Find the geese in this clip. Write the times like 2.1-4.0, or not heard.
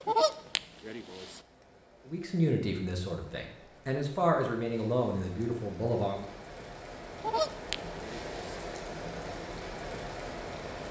0.0-1.4, 7.2-8.6.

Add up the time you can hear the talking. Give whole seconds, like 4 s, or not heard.
4 s.